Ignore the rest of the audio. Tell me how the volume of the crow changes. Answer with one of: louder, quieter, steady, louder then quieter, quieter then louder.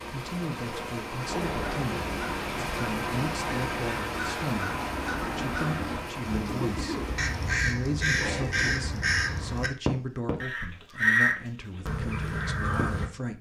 louder.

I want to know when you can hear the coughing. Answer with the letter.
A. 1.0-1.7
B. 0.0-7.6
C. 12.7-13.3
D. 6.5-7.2
D.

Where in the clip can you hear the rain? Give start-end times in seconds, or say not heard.
0.0-7.6.